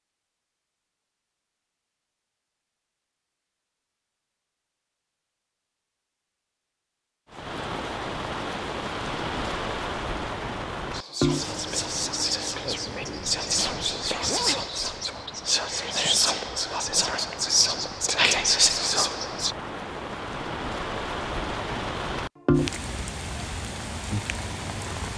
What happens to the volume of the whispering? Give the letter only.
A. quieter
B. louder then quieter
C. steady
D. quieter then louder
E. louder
E.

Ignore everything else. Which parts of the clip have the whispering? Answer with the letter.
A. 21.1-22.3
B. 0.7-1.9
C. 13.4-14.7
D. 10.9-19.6
D.